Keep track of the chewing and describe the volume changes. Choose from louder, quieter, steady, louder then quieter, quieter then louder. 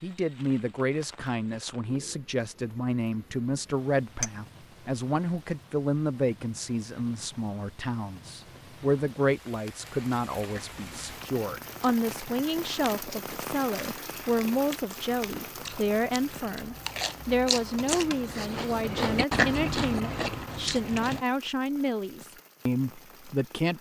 louder.